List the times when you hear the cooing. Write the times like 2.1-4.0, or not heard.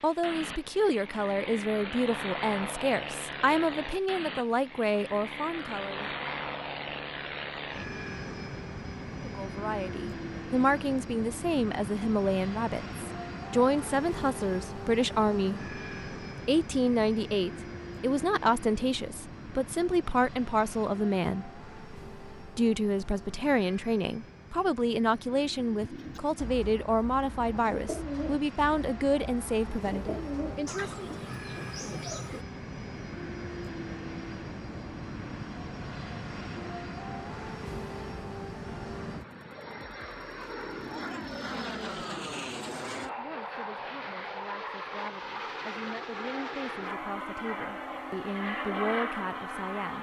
25.8-32.5.